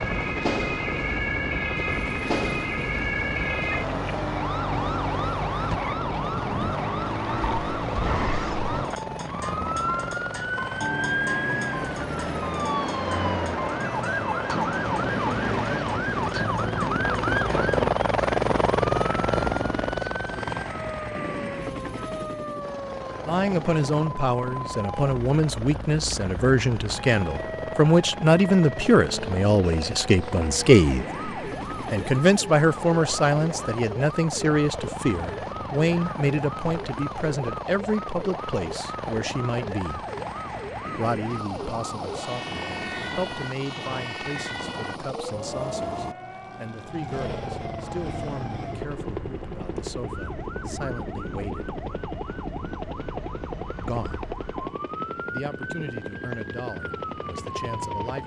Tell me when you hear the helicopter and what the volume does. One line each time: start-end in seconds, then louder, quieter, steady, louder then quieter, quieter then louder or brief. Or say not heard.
0.0-58.2 louder then quieter.